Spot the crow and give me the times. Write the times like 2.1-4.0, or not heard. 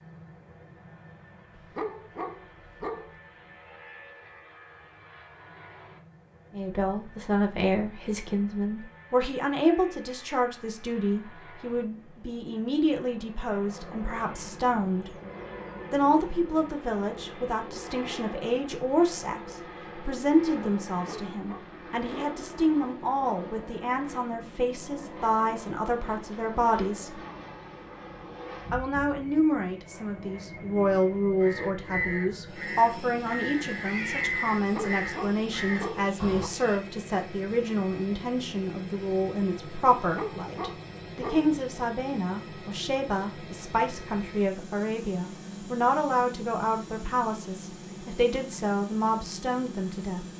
31.2-36.5.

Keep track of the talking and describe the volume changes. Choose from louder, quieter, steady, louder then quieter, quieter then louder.
steady.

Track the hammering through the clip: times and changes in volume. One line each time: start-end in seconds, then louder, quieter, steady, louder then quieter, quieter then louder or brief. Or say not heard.
not heard.